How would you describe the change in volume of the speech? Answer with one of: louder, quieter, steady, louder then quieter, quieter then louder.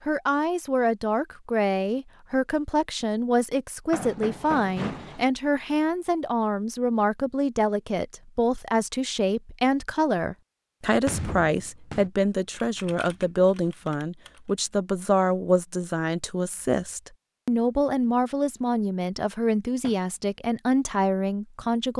steady.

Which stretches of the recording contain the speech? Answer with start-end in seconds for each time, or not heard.
0.1-21.9.